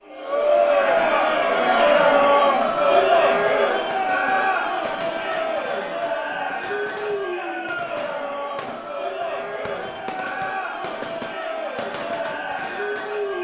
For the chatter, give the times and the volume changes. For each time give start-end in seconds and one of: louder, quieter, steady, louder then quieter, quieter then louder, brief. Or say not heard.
0.0-13.3 quieter.